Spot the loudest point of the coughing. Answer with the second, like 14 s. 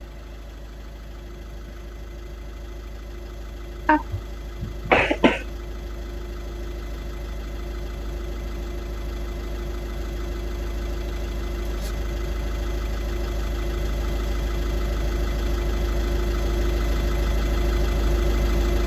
5 s.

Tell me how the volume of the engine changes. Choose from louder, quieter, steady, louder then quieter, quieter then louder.
louder.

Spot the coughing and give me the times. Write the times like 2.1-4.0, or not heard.
3.9-5.5.